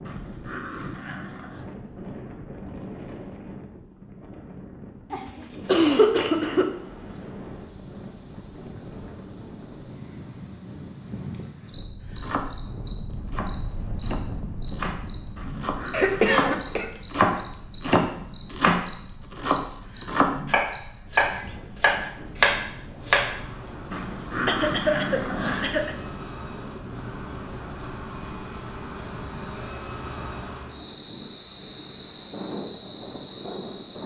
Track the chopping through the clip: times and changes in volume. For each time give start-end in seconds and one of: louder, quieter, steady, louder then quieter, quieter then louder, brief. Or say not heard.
12.2-16.5 louder
17.1-23.4 steady.